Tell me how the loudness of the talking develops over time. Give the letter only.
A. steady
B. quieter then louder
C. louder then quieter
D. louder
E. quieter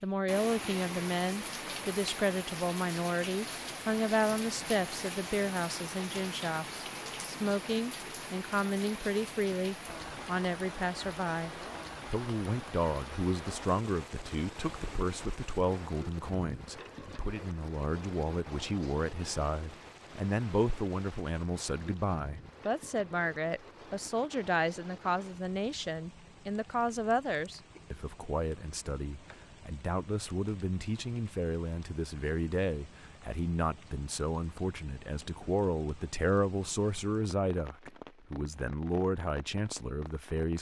A.